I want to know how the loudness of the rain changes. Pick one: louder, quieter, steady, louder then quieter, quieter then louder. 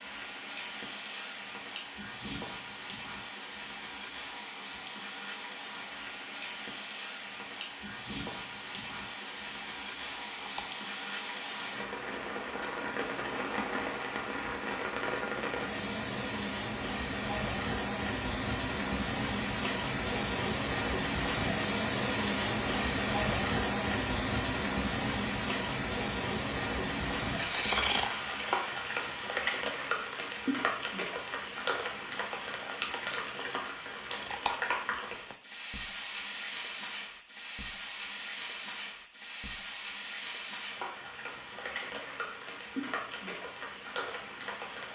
louder then quieter.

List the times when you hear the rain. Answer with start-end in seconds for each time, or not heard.
0.0-44.9.